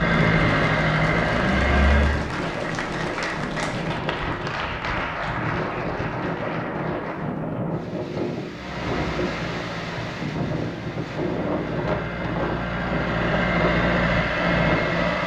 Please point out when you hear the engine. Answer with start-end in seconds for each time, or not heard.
0.0-2.2, 8.5-15.2.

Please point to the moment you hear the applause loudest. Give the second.
5 s.